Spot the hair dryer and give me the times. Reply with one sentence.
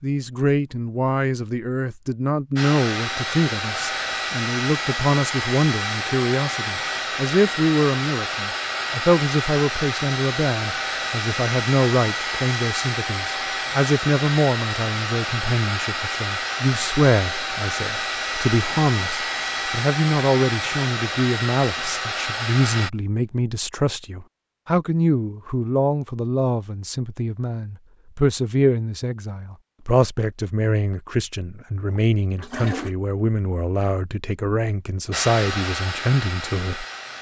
You can hear the hair dryer from 2.5 to 22.9 s and from 35.1 to 37.1 s.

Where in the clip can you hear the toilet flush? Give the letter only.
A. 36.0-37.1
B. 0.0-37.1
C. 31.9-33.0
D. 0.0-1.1
C.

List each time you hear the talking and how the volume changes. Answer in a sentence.
You can hear the talking from 0.0 to 37.1 s, at a steady volume.